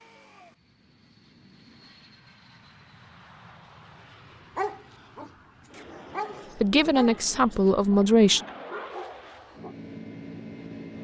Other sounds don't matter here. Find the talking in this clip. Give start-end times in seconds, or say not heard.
6.6-8.4.